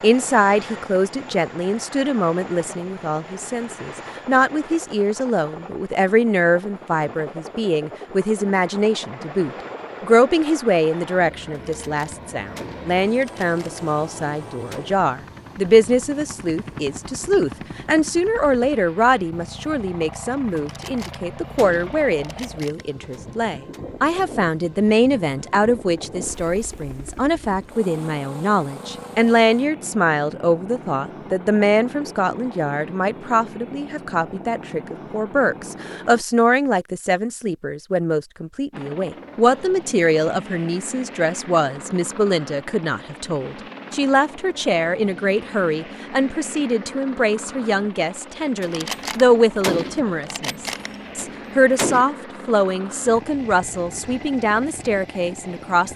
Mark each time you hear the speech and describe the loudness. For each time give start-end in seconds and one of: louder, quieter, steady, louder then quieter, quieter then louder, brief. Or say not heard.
0.0-55.9 steady.